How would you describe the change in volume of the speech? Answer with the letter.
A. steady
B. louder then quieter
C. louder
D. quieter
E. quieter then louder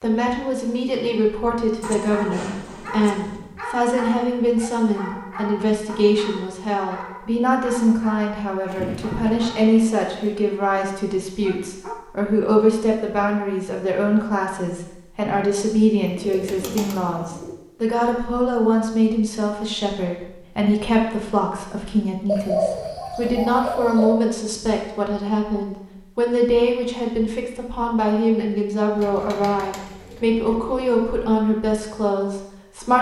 A.